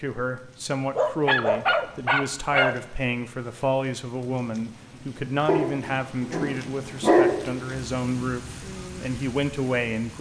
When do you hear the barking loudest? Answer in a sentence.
The volume of the barking peaks at 7 seconds.